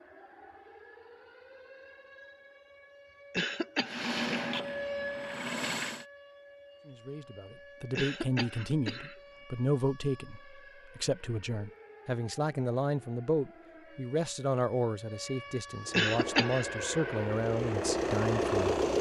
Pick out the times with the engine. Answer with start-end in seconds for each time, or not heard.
3.9-6.0, 15.8-18.9.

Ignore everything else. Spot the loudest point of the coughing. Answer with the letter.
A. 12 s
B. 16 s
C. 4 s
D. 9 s
B.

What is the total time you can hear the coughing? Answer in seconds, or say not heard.
3 s.